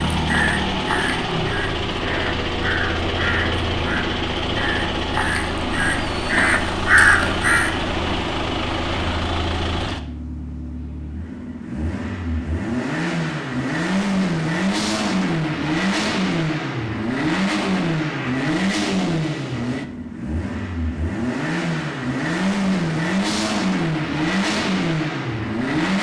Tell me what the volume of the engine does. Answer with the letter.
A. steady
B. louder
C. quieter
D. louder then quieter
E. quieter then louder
A.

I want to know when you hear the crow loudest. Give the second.
7 s.